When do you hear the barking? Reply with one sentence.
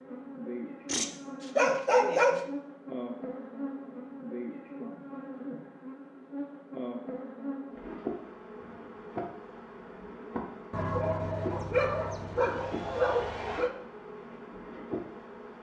The barking can be heard from 0.8 to 2.5 s and from 10.7 to 13.7 s.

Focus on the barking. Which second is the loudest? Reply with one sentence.
The loudest moment of the barking is at 2 seconds.